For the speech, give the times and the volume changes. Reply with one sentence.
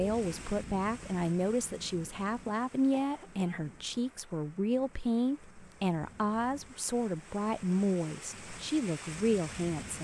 You can hear the speech from 0.0 to 9.9 s, at a steady volume.